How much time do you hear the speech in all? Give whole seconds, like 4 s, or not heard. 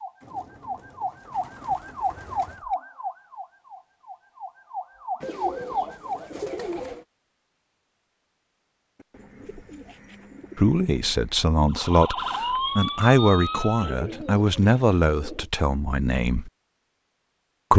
6 s.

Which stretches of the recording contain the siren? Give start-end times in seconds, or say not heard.
0.0-6.2, 11.7-14.0.